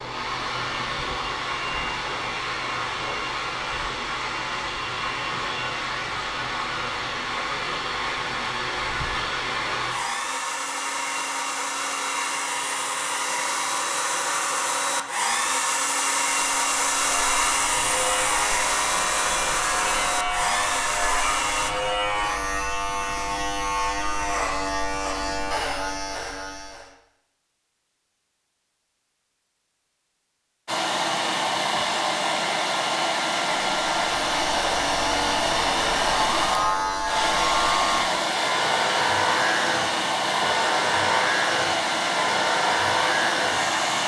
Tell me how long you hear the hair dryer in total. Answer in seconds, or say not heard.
35 s.